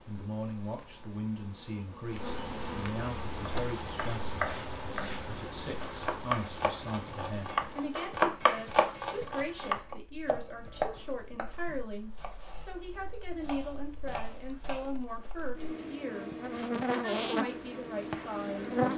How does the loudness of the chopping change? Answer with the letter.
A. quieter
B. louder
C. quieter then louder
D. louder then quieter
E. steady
D.